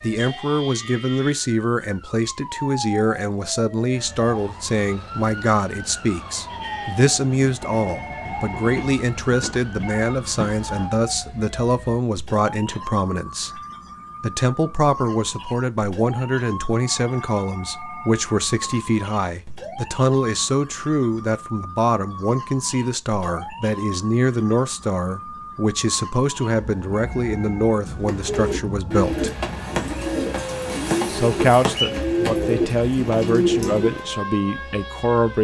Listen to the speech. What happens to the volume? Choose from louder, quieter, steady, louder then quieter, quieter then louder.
steady.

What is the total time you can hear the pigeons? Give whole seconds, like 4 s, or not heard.
6 s.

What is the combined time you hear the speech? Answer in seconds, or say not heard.
33 s.